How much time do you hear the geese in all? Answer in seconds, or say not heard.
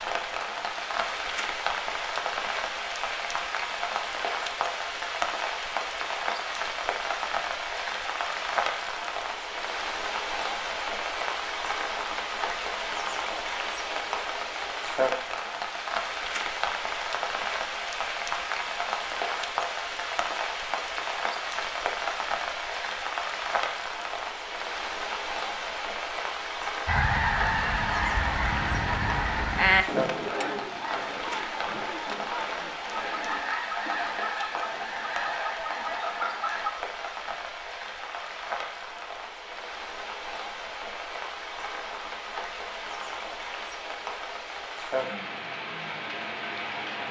10 s.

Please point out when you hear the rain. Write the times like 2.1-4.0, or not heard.
0.0-47.0.